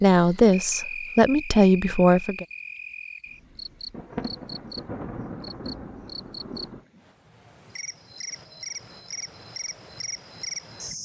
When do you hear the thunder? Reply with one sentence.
You can hear the thunder from 3.9 to 6.8 s.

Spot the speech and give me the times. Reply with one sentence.
The speech can be heard from 0.0 to 2.5 s.